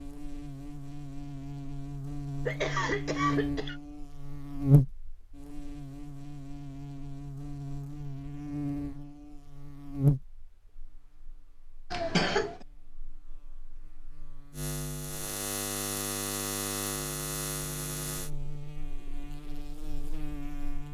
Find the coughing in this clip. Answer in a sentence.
You can hear the coughing from 2.5 to 3.8 s and from 11.9 to 12.6 s.